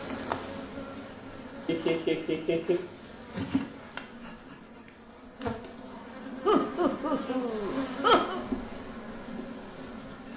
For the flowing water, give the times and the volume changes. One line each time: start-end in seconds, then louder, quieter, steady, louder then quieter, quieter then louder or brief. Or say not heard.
not heard.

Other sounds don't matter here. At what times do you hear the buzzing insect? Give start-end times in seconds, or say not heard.
0.0-10.3.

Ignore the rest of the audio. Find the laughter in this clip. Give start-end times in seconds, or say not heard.
1.6-2.8, 6.5-8.4.